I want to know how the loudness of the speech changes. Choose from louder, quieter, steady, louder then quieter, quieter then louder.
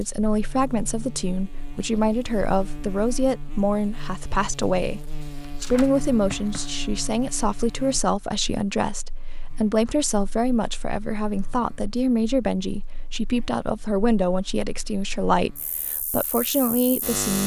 steady.